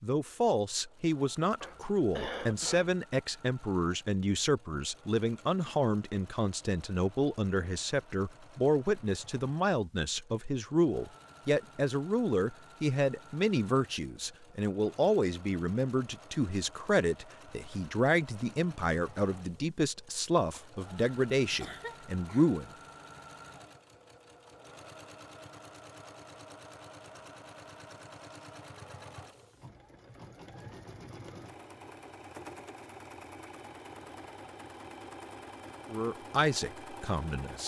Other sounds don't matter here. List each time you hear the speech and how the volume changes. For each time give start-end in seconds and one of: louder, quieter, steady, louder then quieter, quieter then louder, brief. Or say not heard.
0.0-22.7 steady
35.9-37.6 brief.